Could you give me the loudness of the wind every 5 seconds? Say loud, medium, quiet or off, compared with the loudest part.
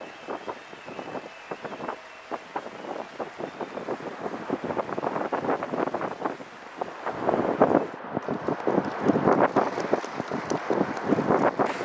medium, loud, loud.